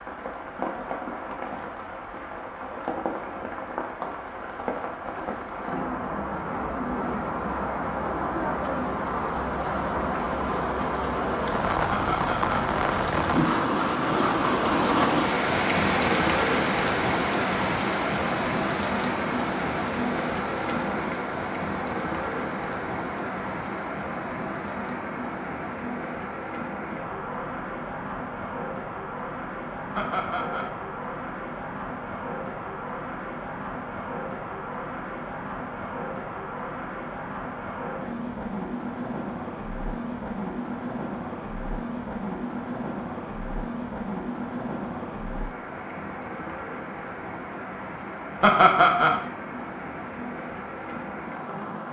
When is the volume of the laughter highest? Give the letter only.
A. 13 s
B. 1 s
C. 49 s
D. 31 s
C.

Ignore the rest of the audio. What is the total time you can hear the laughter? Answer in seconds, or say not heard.
2 s.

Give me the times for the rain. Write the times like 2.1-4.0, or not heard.
0.0-51.8.